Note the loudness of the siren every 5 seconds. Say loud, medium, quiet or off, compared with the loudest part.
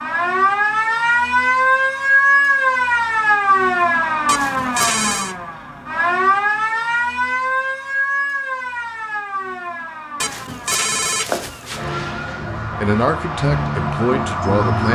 loud, medium, medium.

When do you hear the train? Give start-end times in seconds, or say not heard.
not heard.